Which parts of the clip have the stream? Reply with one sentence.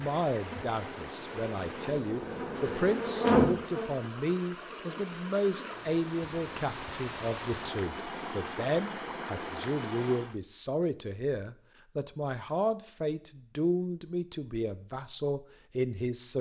The stream can be heard from 0.0 to 10.4 s.